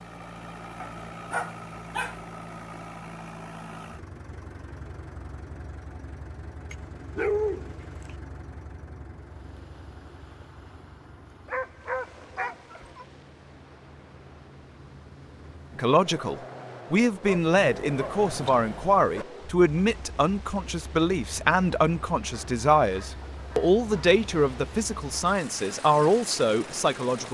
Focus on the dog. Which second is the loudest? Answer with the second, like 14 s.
7 s.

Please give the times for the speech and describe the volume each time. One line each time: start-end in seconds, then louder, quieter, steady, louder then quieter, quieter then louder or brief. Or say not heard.
15.8-27.2 steady.